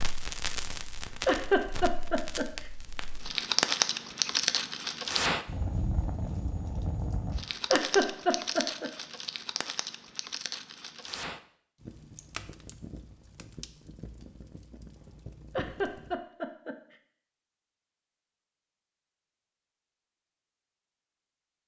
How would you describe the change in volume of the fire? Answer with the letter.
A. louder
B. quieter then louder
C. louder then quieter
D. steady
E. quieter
C.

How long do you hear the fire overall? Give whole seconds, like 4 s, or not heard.
16 s.